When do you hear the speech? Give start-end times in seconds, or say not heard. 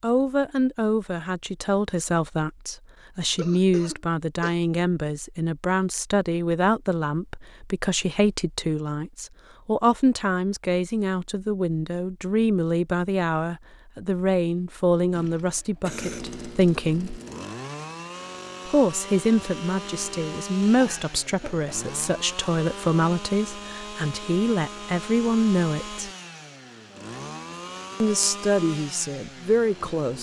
0.0-17.2, 18.6-26.1, 28.0-30.1.